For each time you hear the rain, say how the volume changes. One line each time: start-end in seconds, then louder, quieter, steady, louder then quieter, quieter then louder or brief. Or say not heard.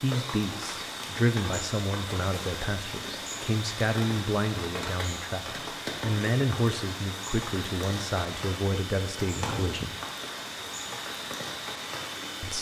0.0-12.5 steady.